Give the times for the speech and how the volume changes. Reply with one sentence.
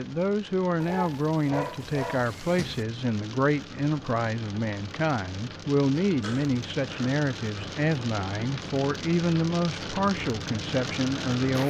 The speech can be heard from 0.0 to 11.6 s, at a steady volume.